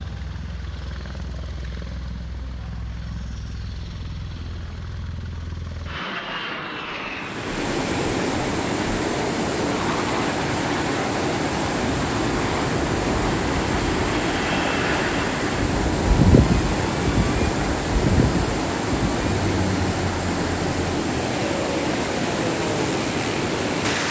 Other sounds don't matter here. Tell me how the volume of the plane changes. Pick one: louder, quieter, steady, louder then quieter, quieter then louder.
louder then quieter.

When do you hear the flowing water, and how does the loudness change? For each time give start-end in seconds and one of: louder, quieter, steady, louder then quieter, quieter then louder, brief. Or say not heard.
7.2-24.0 steady.